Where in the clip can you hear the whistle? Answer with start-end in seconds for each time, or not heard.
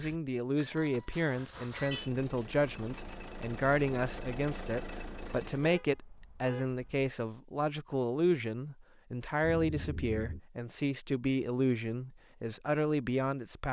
not heard.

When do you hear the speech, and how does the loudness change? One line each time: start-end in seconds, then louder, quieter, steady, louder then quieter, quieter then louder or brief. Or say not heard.
0.0-13.6 steady.